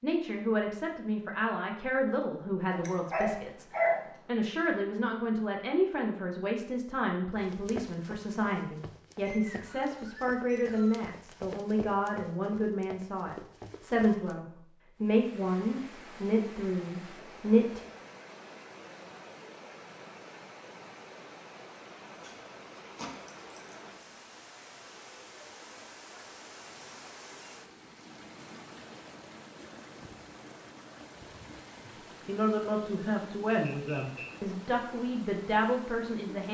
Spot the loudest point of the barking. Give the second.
4 s.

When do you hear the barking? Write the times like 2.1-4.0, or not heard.
2.7-4.0, 22.2-24.1.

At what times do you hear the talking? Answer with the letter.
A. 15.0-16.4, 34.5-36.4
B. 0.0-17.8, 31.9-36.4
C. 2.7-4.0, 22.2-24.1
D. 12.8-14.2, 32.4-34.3
B.